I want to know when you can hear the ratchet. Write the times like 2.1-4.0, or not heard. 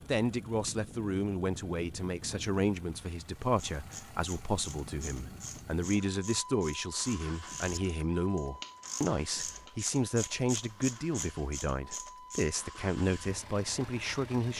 3.4-12.6.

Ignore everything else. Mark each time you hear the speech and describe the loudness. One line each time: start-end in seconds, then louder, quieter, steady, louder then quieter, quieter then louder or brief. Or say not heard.
0.1-14.5 steady.